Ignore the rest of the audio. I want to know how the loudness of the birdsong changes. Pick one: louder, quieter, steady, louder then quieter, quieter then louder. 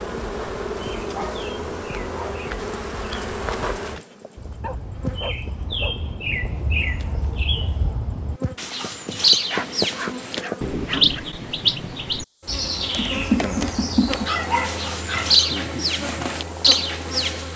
louder.